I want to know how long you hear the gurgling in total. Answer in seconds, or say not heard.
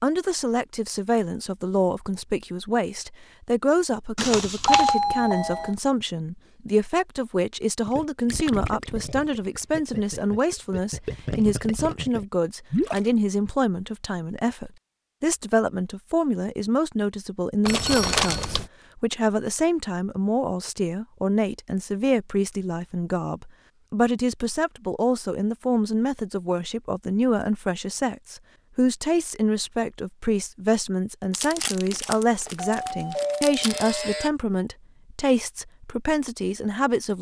5 s.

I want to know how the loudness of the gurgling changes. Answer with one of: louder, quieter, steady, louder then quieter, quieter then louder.
quieter then louder.